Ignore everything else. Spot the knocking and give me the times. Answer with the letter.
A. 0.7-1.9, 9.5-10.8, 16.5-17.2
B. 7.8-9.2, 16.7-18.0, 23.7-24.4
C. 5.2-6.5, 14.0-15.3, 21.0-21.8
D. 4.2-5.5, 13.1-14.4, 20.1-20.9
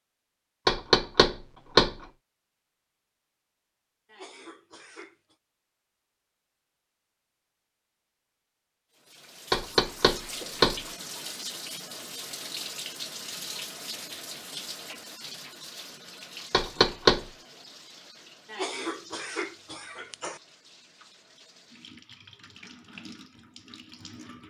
A.